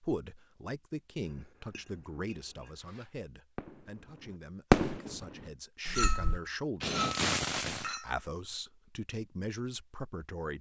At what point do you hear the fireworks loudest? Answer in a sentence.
The loudest moment of the fireworks is at 5 seconds.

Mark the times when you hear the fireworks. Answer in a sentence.
You can hear the fireworks from 2.8 to 7.9 s.